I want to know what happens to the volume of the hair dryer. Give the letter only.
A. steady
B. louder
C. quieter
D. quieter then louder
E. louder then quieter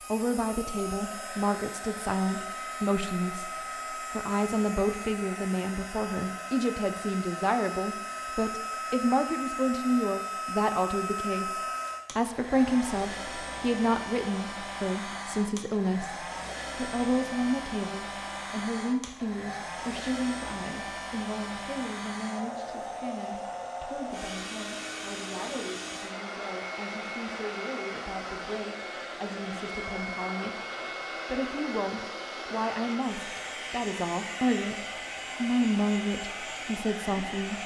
A.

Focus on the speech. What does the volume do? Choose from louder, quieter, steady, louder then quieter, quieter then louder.
quieter then louder.